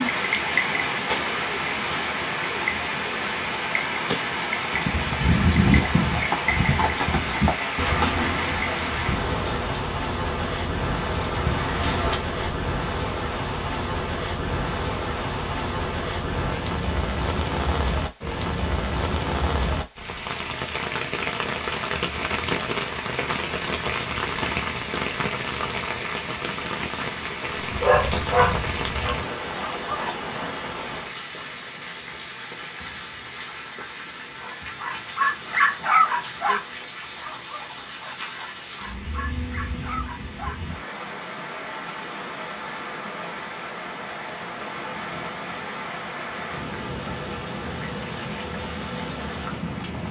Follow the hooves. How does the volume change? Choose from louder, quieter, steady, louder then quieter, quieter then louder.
quieter.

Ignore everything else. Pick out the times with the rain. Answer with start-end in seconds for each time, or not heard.
0.0-50.0.